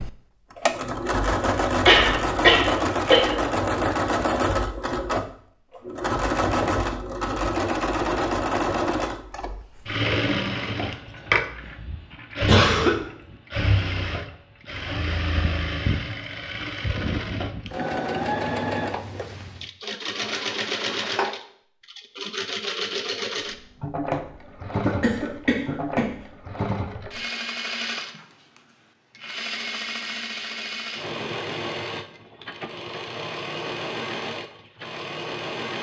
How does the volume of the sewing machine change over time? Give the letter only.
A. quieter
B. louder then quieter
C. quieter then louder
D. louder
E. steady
A.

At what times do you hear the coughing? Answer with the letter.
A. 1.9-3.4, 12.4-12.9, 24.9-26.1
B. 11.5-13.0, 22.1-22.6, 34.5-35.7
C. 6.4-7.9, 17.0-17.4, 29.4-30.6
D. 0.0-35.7
A.